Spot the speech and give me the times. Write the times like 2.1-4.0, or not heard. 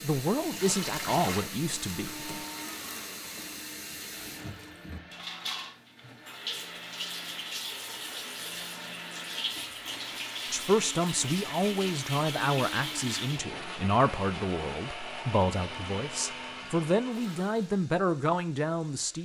0.0-2.3, 10.5-19.2.